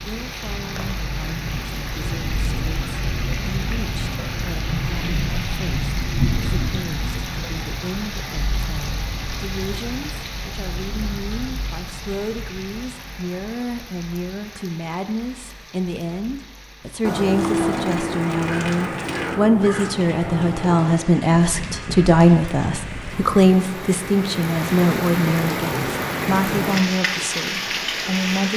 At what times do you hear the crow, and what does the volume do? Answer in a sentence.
The crow can be heard from 17.0 to 23.2 s, getting quieter.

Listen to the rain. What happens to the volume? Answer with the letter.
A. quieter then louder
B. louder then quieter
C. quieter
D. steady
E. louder
A.